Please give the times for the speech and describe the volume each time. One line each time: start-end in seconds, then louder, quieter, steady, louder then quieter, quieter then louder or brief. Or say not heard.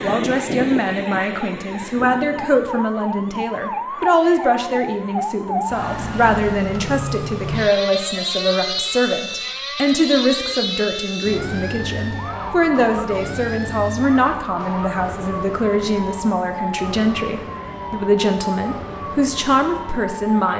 0.0-20.5 steady.